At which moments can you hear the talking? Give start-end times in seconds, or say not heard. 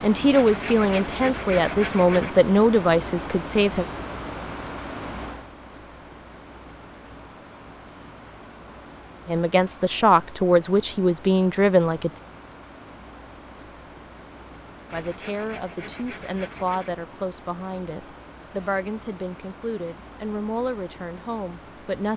0.0-3.9, 9.2-12.1, 14.9-22.1.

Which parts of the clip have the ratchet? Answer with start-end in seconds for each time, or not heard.
not heard.